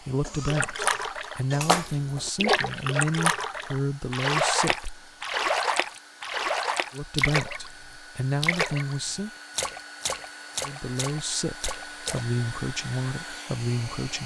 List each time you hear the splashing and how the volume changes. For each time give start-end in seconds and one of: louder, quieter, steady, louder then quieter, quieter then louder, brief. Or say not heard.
0.5-7.7 steady
8.4-8.9 brief
9.6-12.2 brief.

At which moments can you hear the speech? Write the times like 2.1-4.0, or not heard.
0.0-5.1, 6.9-9.3, 10.6-14.2.